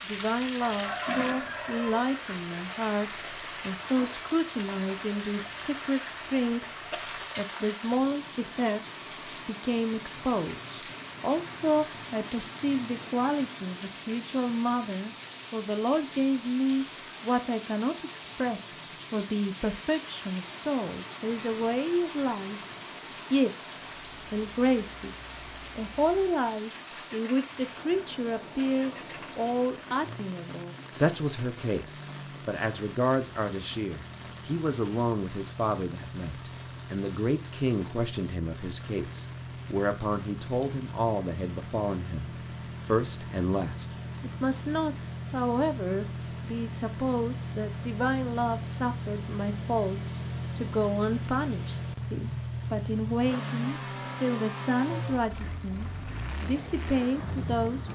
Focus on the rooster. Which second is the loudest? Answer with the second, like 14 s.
1 s.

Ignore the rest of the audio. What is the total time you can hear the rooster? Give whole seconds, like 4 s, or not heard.
2 s.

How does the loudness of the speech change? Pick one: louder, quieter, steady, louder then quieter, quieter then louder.
steady.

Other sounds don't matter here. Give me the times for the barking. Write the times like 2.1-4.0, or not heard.
not heard.